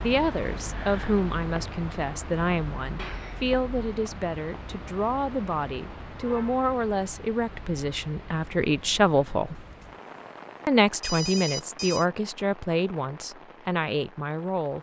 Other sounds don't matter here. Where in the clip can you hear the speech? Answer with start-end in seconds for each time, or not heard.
0.0-9.6, 10.7-14.7.